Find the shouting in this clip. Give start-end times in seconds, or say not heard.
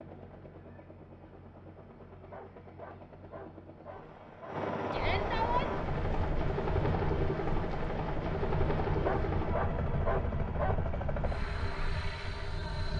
4.9-5.7.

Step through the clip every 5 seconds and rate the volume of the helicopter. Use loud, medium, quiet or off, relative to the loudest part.
medium, loud, medium.